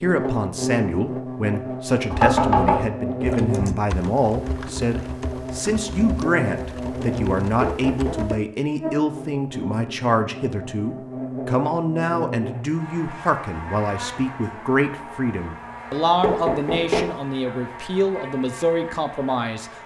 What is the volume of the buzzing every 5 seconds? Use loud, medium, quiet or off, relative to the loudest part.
loud, loud, medium, medium.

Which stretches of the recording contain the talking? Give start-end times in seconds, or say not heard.
0.0-19.6.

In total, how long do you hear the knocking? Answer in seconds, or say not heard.
2 s.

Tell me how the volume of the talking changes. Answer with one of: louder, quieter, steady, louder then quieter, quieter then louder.
steady.